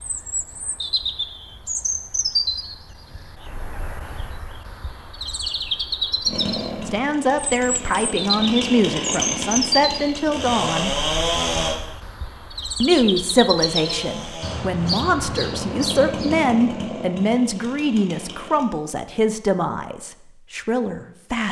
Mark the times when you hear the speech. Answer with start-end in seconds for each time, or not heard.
6.8-10.9, 12.8-21.4.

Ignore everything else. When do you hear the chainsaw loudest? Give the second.
11 s.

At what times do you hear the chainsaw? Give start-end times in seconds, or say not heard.
6.2-11.8, 13.6-18.7.